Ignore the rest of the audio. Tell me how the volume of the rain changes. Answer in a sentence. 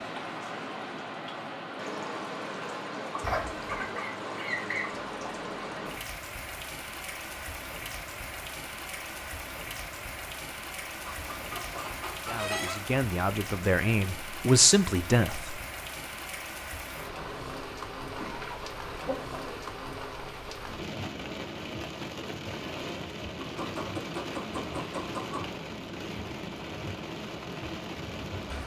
The loudness of the rain stays about the same.